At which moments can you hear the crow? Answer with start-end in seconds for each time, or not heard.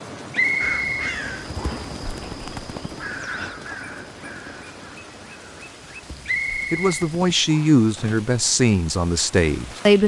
0.6-7.3.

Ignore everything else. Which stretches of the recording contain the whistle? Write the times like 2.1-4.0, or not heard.
0.3-1.9, 6.2-7.8.